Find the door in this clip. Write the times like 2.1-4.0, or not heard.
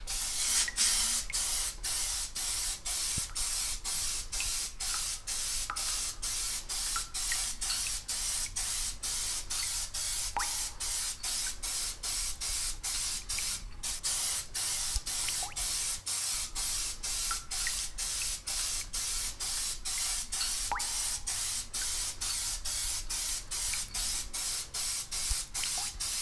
not heard.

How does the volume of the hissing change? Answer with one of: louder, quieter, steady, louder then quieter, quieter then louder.
steady.